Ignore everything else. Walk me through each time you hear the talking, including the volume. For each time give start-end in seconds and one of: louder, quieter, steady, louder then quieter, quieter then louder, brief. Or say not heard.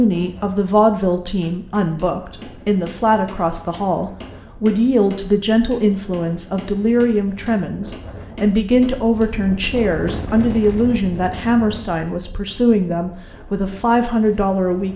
0.0-14.9 steady.